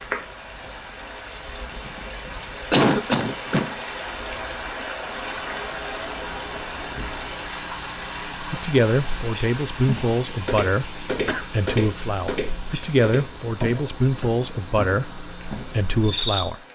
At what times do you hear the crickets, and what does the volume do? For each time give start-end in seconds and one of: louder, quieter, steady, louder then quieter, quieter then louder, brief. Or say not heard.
0.0-16.6 steady.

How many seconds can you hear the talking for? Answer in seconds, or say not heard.
8 s.